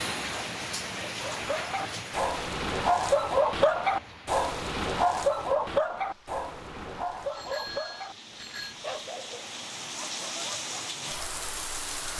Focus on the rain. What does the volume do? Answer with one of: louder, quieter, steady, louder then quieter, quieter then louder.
quieter then louder.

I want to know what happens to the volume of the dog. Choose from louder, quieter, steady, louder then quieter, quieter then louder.
quieter.